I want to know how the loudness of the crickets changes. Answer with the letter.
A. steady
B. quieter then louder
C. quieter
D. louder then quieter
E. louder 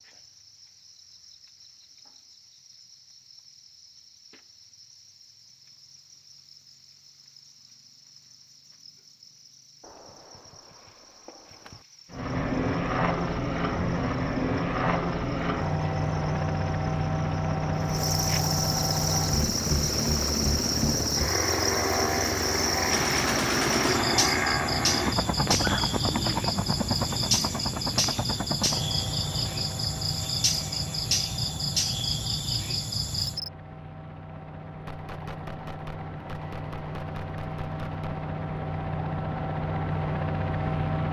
E.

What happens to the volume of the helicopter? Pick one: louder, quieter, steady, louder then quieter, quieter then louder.
quieter then louder.